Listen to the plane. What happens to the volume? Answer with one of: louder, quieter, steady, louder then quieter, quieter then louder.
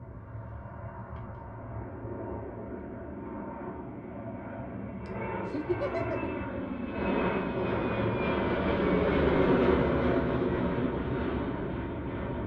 louder.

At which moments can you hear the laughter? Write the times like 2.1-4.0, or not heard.
5.0-6.3.